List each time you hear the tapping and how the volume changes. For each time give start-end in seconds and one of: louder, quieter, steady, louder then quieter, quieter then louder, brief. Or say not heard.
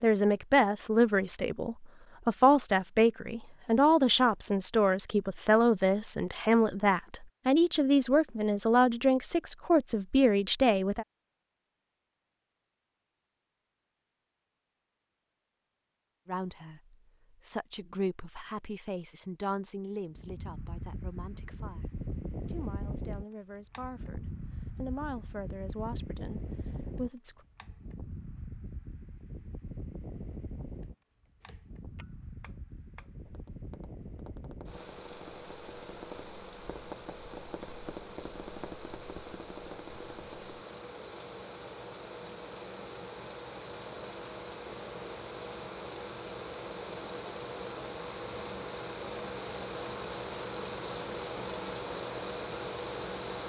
31.4-40.5 louder.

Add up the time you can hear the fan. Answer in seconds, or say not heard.
33 s.